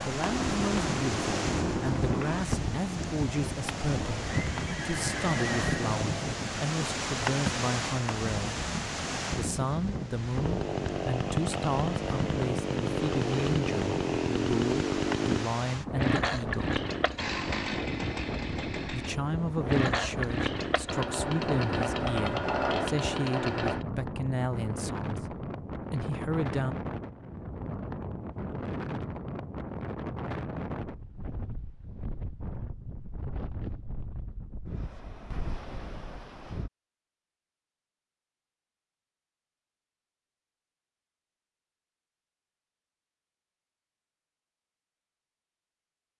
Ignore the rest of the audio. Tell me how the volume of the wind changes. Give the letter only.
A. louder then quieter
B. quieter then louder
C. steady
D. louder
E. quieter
E.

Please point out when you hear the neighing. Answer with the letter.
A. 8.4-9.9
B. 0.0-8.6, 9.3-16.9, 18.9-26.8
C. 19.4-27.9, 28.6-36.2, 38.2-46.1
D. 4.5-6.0
D.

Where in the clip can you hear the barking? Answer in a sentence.
You can't hear the barking here.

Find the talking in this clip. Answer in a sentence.
You can hear the talking from 0.0 to 8.6 s, from 9.3 to 16.9 s and from 18.9 to 26.8 s.